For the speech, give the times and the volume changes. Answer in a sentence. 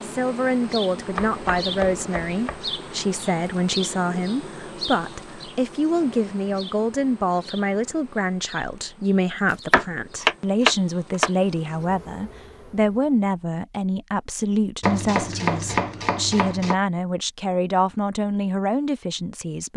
The speech can be heard from 0.0 to 19.7 s, at a steady volume.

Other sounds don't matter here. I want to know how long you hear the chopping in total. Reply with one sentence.
The chopping can be heard for 5 seconds in total.